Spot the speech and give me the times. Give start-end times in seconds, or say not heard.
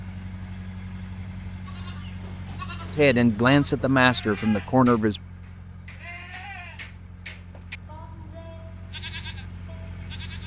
3.0-5.2.